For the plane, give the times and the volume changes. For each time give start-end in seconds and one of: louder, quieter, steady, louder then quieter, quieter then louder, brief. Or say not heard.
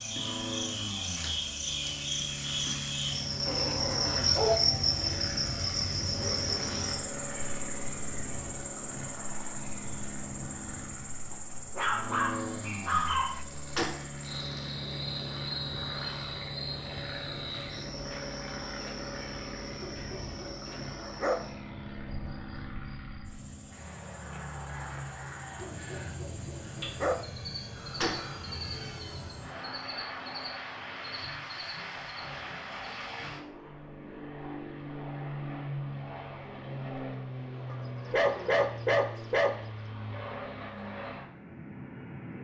0.0-42.3 steady.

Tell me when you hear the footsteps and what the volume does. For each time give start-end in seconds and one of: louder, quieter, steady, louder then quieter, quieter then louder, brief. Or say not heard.
not heard.